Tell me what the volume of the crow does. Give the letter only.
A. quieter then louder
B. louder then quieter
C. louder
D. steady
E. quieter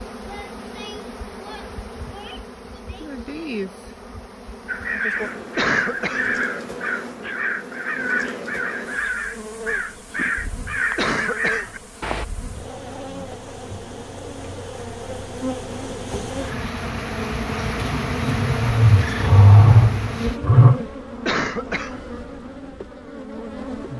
D.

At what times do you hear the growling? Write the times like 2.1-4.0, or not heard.
18.3-20.8.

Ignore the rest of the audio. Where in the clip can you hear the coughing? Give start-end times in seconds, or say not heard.
5.5-6.3, 10.9-11.8, 21.2-22.1.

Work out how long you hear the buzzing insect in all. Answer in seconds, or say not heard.
24 s.